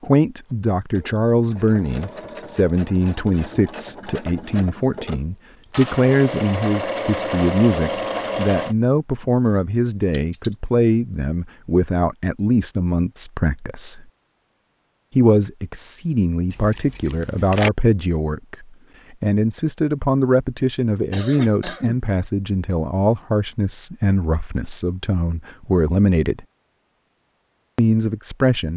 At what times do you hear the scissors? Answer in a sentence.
You can hear the scissors from 10.1 to 10.6 s and from 16.5 to 17.7 s.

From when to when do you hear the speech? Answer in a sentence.
You can hear the speech from 0.0 to 14.1 s, from 15.2 to 26.4 s and from 27.8 to 28.7 s.